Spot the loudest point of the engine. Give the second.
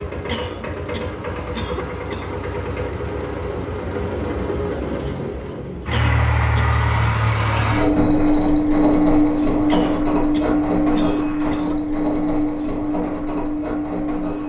9 s.